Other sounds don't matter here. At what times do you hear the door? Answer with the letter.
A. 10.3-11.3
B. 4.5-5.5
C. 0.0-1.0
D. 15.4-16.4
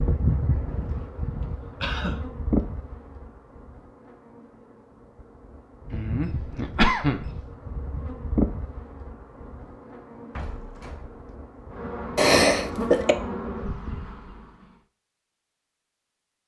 A.